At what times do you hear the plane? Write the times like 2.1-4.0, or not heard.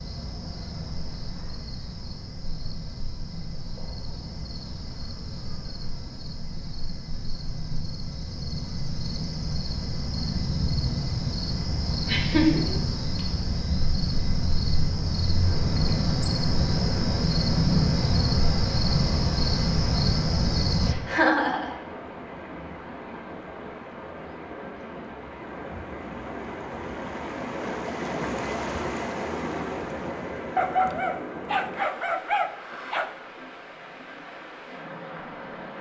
not heard.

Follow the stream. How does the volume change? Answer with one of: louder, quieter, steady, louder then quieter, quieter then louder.
louder then quieter.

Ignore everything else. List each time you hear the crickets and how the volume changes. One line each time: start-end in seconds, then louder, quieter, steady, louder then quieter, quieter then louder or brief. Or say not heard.
0.0-20.9 louder.